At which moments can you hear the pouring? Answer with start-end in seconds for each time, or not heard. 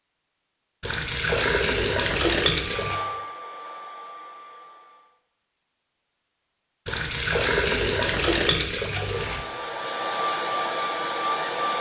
0.8-3.0, 6.8-9.4.